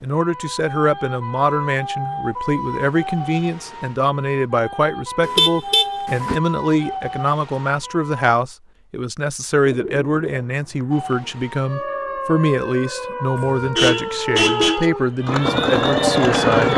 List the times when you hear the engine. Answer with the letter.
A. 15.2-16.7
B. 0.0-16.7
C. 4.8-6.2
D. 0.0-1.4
A.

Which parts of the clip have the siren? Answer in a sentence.
The siren can be heard from 0.0 to 8.2 s and from 10.9 to 16.7 s.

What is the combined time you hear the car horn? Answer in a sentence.
The car horn can be heard for 3 seconds in total.